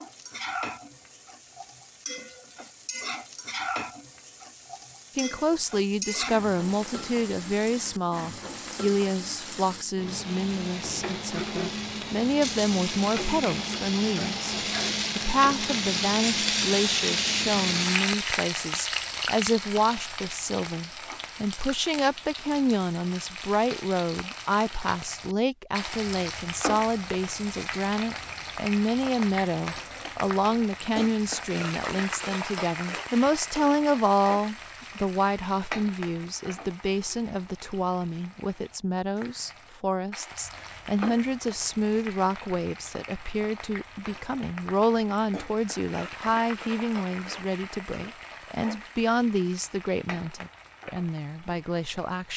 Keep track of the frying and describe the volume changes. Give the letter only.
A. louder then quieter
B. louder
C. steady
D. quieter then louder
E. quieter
A.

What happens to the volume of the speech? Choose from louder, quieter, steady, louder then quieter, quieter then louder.
steady.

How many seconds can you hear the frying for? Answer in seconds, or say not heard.
52 s.